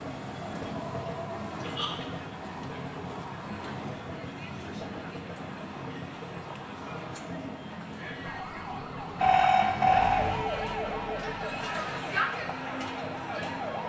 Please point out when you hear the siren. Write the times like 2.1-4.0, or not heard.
8.2-13.8.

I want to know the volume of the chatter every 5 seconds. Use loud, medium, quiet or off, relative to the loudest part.
medium, medium, loud.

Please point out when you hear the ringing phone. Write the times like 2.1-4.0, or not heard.
0.7-1.9, 9.2-10.4.